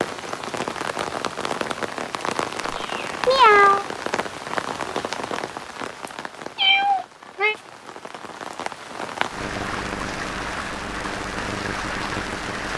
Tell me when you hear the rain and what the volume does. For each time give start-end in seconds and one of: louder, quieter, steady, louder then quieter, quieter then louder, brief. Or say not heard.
0.0-12.7 quieter then louder.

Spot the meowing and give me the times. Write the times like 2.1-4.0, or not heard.
2.6-3.9, 6.5-7.5.